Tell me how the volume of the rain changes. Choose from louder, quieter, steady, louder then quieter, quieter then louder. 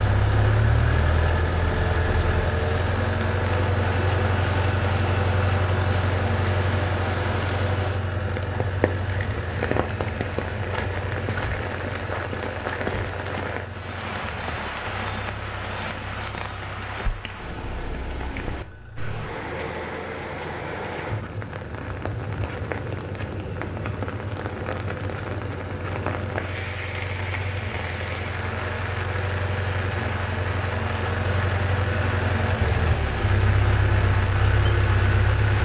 steady.